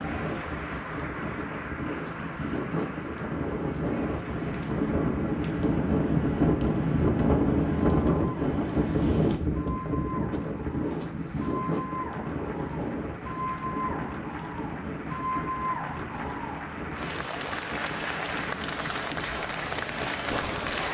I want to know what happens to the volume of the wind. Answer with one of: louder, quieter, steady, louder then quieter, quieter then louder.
louder then quieter.